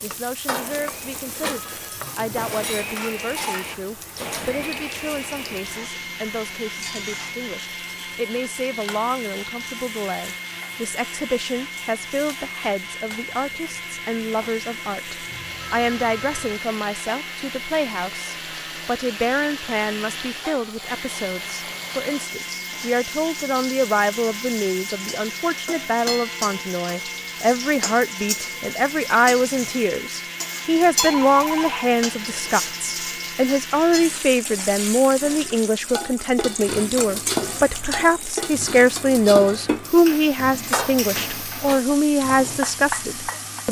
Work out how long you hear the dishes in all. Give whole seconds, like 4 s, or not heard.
12 s.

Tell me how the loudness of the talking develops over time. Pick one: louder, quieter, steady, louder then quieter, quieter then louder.
louder.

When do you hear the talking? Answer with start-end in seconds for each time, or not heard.
0.0-43.6.